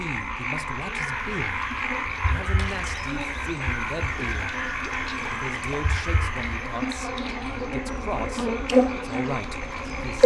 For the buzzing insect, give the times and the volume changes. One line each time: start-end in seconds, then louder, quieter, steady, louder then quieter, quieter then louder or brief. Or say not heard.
0.0-10.2 louder.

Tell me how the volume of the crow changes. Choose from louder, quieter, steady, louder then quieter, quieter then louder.
steady.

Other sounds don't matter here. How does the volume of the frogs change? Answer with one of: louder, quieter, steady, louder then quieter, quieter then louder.
quieter.